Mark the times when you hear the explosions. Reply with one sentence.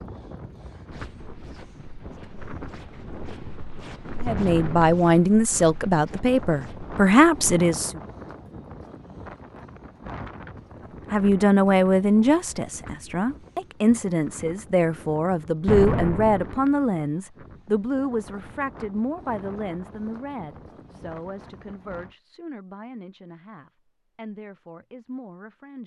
You can hear the explosions from 4.2 to 5.0 s and from 15.7 to 16.6 s.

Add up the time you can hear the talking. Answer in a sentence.
The talking can be heard for 18 seconds in total.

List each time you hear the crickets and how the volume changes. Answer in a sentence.
You can't hear the crickets here.